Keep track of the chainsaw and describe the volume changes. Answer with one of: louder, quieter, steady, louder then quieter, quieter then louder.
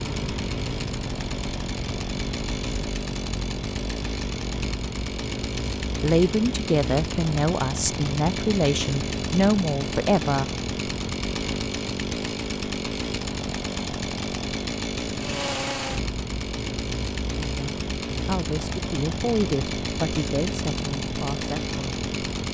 steady.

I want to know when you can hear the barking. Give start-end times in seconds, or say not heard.
not heard.